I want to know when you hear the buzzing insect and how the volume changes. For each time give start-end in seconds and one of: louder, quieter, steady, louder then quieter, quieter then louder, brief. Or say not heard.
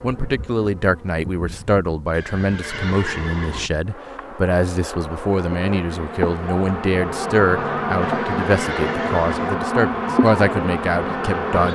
0.0-11.6 louder.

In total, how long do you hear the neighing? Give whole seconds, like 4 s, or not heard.
3 s.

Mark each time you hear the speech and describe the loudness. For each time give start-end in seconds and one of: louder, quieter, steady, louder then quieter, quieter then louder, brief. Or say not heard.
0.0-11.6 steady.